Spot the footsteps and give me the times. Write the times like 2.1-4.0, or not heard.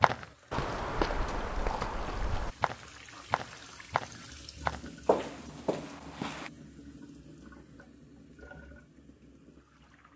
0.0-6.5.